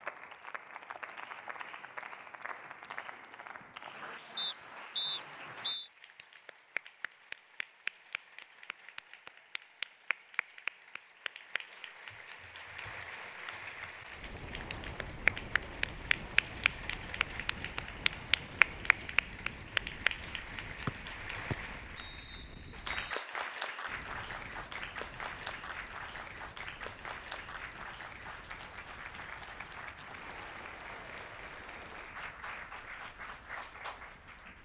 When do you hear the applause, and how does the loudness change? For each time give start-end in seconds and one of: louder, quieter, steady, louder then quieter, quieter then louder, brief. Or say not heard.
0.0-34.6 louder then quieter.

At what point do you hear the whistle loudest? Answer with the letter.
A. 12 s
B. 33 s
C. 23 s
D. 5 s
D.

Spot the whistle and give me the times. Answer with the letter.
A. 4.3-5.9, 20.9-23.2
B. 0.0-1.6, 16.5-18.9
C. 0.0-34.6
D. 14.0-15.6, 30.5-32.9
A.